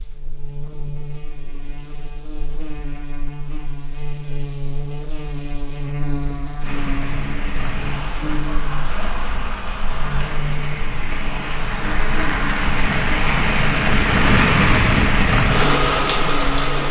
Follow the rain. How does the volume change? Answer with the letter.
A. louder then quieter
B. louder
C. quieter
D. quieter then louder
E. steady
B.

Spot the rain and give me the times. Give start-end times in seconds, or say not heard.
6.6-16.8.